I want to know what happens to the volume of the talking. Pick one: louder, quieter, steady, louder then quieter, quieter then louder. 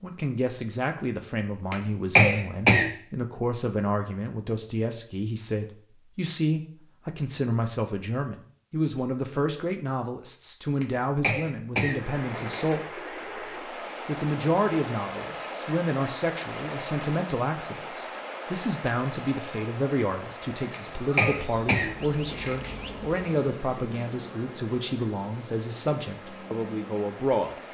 steady.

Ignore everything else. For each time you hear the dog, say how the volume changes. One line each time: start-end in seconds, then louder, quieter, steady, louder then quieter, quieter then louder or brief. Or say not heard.
not heard.